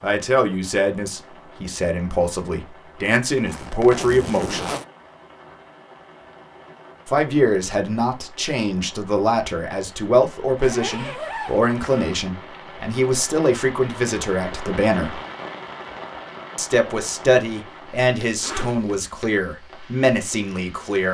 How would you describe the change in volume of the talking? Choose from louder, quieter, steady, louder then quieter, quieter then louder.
steady.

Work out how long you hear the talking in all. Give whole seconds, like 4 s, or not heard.
17 s.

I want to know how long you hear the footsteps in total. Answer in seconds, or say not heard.
not heard.